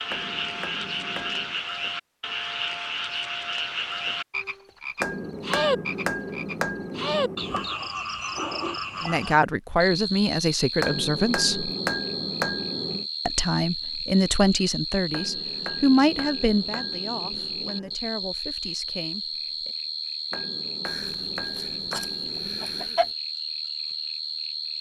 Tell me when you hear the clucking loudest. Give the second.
23 s.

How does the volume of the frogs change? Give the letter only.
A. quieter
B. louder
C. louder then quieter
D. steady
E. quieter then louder
D.